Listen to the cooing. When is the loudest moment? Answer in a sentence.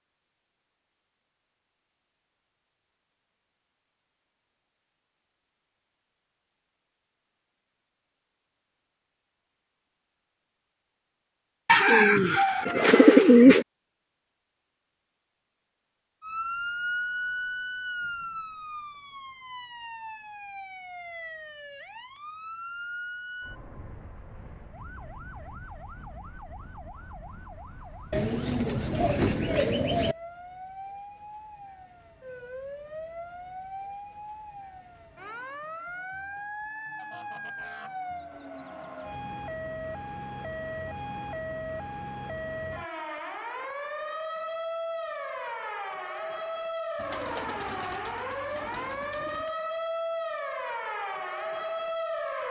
The loudest moment of the cooing is at 13 seconds.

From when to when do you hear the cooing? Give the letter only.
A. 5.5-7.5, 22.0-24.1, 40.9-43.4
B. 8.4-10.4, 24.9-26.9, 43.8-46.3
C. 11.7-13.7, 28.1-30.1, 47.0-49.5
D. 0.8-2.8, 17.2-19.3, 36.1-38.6
C.